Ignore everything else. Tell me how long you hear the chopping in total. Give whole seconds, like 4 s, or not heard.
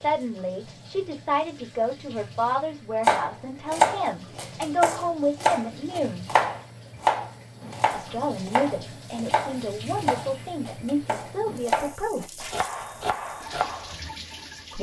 11 s.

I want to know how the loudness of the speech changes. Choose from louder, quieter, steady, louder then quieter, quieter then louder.
steady.